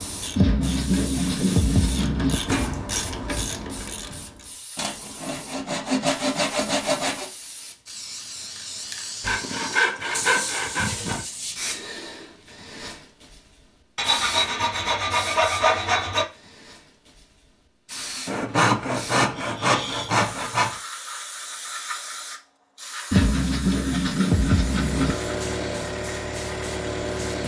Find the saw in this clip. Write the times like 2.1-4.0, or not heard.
0.3-2.4, 4.8-7.3, 9.2-11.2, 13.9-16.2, 18.2-20.7, 23.1-25.1.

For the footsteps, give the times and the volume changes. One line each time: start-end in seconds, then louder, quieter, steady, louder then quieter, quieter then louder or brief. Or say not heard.
not heard.